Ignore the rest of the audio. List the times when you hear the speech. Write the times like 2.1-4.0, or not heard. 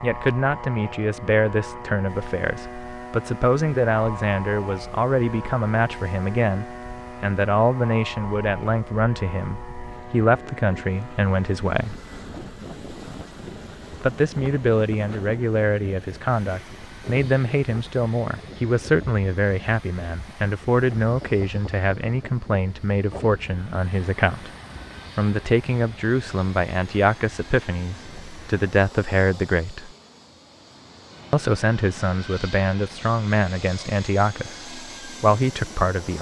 0.0-12.0, 14.0-24.5, 25.1-29.9, 31.3-36.1.